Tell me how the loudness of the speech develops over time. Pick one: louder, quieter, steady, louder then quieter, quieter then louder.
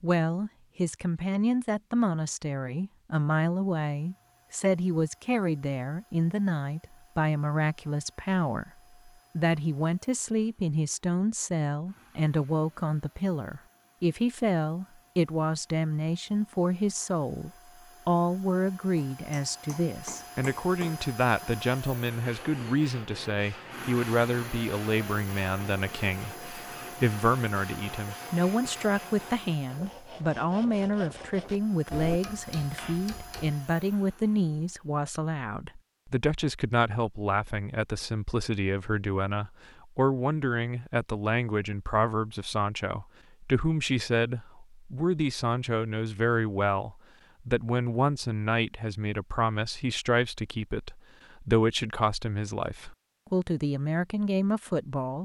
steady.